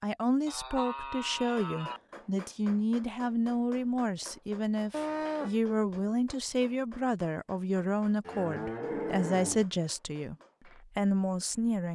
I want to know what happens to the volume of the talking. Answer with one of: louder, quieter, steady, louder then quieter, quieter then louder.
steady.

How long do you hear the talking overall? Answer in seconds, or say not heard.
12 s.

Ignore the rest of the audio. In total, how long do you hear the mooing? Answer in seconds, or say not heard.
4 s.